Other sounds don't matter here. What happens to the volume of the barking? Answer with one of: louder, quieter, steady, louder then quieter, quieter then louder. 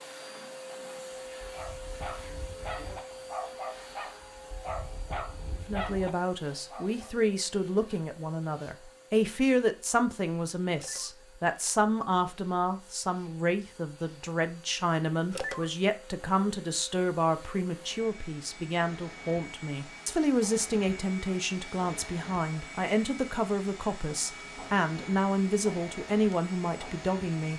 louder.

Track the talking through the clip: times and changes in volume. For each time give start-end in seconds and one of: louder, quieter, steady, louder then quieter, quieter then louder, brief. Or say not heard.
5.7-27.5 steady.